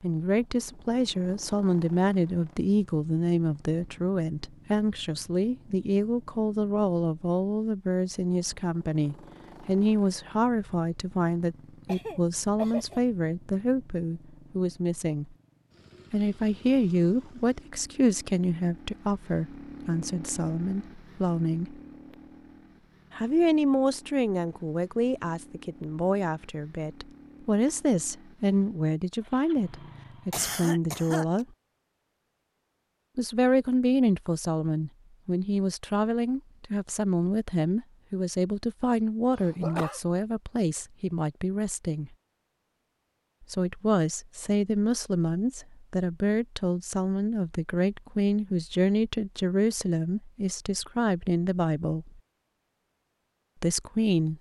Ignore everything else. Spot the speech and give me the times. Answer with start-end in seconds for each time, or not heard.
0.0-15.3, 16.1-21.8, 23.1-31.4, 33.1-42.1, 43.5-52.2, 53.6-54.3.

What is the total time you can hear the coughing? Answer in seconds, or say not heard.
3 s.